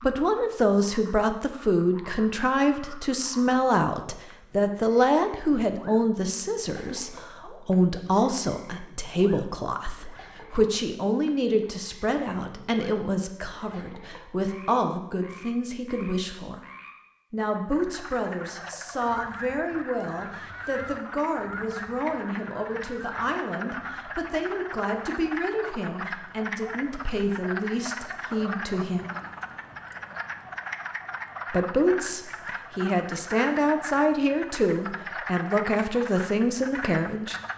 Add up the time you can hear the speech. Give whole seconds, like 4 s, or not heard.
34 s.